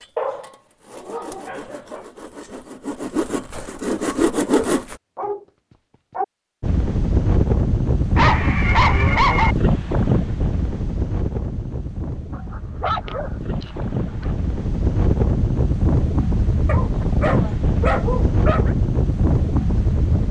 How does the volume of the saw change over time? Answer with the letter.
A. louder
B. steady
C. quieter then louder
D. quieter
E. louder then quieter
A.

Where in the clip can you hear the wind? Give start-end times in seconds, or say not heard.
6.6-20.2.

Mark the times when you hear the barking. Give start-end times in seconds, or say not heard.
0.1-2.0, 4.5-5.4, 8.2-9.6, 12.3-14.3, 16.6-18.7.